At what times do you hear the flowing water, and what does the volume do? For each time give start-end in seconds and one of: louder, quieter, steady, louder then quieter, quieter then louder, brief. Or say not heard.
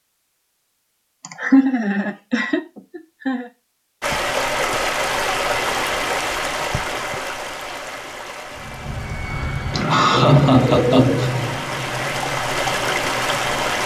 4.0-13.8 quieter then louder.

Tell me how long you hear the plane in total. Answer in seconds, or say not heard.
5 s.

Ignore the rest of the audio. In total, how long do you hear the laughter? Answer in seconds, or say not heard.
4 s.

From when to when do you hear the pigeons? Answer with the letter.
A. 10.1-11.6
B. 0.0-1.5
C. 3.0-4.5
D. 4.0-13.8
A.